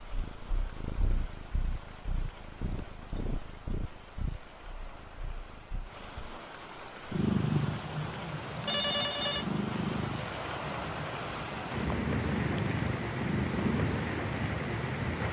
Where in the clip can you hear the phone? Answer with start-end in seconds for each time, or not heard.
8.7-9.4.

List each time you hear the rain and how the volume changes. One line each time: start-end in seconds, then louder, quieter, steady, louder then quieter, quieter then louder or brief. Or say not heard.
0.0-15.2 louder.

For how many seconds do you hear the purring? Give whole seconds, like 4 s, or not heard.
15 s.